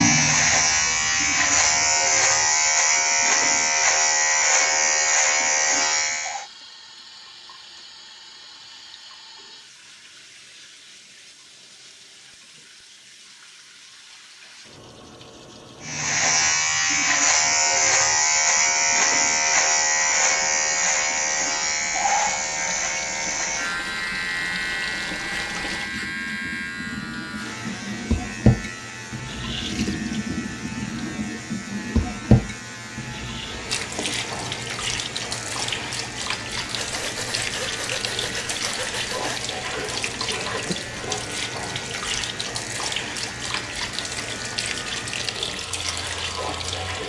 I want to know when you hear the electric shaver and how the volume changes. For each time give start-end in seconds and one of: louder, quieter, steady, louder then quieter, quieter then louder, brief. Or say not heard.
0.0-6.5 steady
15.8-47.0 quieter.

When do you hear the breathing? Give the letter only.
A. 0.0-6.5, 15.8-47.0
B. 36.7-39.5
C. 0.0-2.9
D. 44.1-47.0
B.